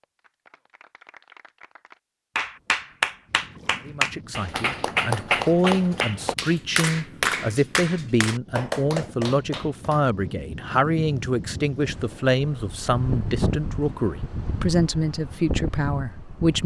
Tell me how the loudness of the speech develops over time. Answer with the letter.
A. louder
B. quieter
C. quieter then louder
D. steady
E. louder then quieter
D.